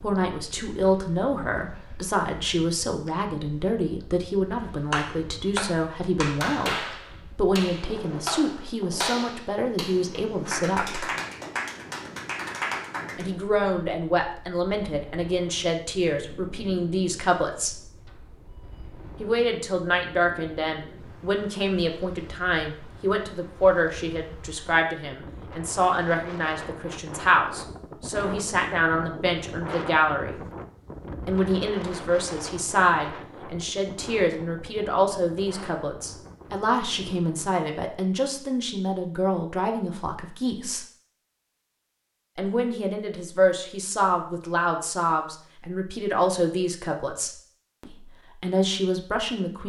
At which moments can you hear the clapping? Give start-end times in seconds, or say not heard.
4.9-13.2.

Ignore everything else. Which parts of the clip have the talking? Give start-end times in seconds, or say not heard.
0.0-6.8, 7.3-11.1, 13.2-17.8, 19.2-30.4, 31.2-40.9, 42.4-49.6.